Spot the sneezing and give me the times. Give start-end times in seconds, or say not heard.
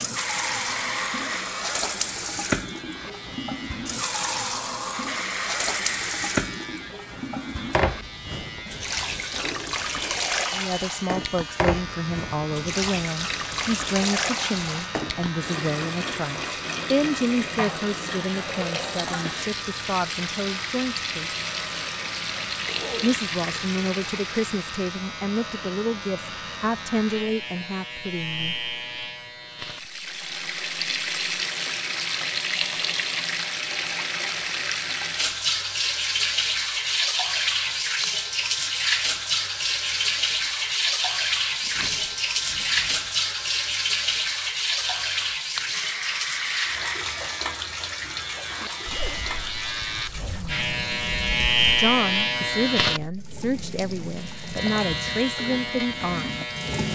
not heard.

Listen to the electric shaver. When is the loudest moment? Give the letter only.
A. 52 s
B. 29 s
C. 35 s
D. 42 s
A.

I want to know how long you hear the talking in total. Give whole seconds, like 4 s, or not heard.
21 s.